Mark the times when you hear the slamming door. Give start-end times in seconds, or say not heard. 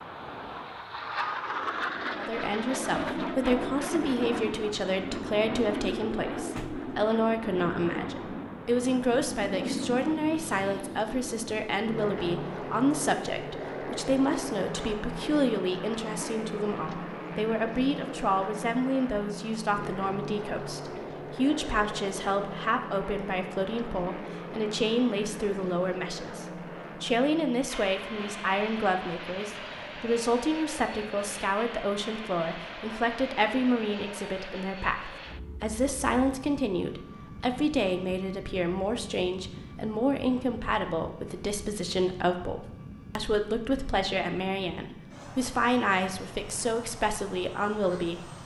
6.5-7.0.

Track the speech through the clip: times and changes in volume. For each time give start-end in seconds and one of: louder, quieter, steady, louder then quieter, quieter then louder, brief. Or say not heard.
2.1-48.3 steady.